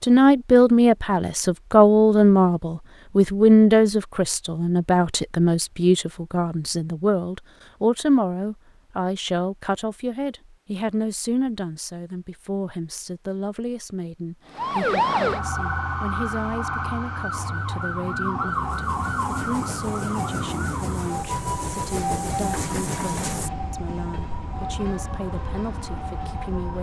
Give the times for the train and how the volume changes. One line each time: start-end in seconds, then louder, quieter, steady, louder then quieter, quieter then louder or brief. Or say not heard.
17.4-26.7 louder then quieter.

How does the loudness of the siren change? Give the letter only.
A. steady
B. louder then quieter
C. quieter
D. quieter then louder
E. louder
C.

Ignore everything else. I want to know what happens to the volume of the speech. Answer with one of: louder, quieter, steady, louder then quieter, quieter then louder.
quieter.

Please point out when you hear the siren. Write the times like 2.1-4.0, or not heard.
14.5-26.7.